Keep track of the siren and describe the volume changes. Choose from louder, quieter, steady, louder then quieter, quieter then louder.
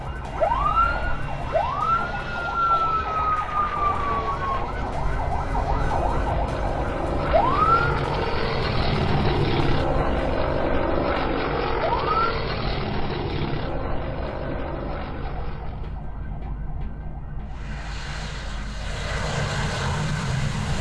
quieter.